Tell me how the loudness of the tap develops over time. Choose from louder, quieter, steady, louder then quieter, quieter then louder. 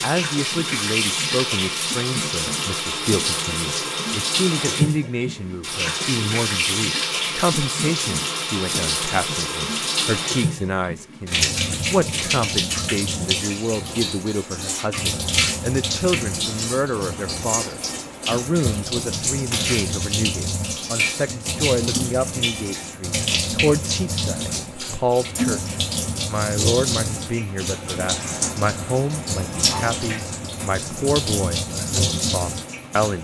steady.